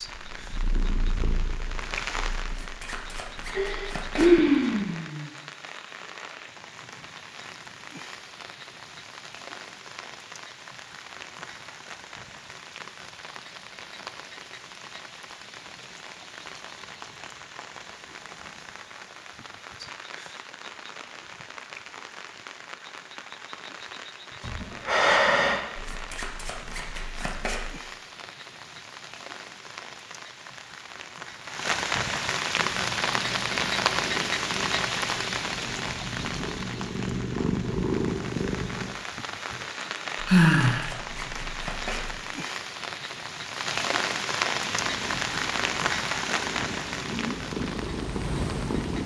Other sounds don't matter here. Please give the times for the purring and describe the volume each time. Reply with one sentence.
You can hear the purring briefly from 0.0 to 2.6 s; from 32.5 to 39.0 s, getting louder; and from 44.6 to 49.0 s, getting louder.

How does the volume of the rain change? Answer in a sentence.
The volume of the rain goes up.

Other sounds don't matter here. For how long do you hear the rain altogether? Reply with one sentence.
The rain can be heard for 49 seconds in total.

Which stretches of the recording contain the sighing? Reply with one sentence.
The sighing can be heard from 3.5 to 5.3 s, from 24.4 to 25.6 s and from 40.2 to 40.9 s.